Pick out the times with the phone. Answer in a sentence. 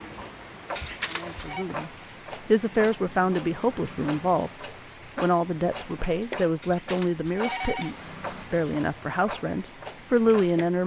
The phone can be heard from 0.8 to 1.6 s and from 6.6 to 8.0 s.